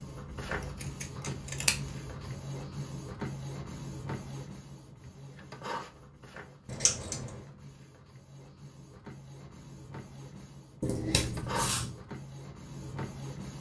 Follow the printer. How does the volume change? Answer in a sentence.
The volume of the printer goes down, then up.